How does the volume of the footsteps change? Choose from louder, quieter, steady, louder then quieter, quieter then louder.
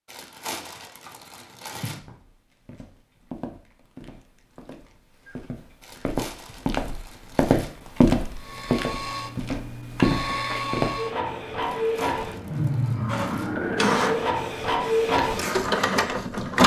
louder.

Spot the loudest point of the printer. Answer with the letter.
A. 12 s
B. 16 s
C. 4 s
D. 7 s
B.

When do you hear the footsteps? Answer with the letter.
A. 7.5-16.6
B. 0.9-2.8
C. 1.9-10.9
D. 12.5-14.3
C.